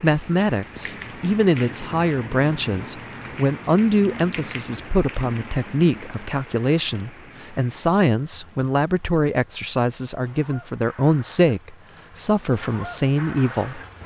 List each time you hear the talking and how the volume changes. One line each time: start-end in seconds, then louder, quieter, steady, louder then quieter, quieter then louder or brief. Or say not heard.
0.0-13.8 steady.